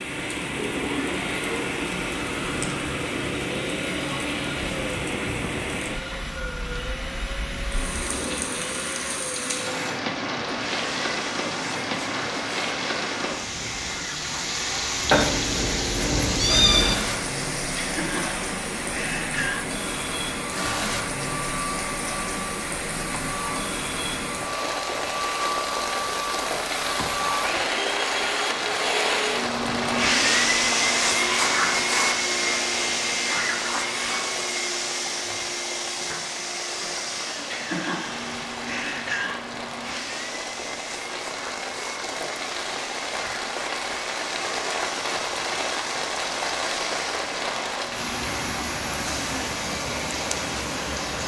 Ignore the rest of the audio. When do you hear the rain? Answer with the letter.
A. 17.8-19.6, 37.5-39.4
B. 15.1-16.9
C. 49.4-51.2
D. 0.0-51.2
D.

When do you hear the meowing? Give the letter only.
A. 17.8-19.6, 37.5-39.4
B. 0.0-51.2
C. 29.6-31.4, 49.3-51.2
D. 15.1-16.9
D.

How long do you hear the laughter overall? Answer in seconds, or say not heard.
4 s.